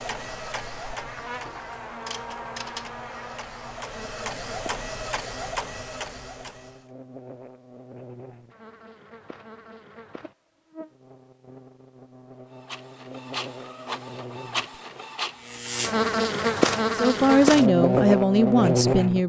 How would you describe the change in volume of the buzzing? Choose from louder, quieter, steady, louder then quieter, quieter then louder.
quieter then louder.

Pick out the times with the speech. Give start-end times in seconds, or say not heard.
16.9-19.2.